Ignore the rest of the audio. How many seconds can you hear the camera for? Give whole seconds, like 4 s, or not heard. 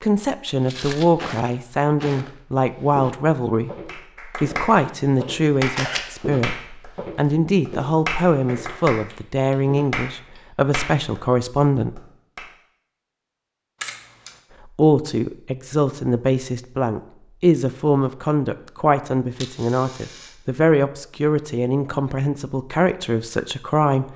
2 s.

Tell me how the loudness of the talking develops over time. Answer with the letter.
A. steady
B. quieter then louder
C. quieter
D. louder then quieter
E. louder
A.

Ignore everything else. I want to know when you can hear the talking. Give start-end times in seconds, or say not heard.
0.0-3.7, 4.4-12.0, 14.8-24.1.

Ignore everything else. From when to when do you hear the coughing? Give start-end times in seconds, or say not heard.
not heard.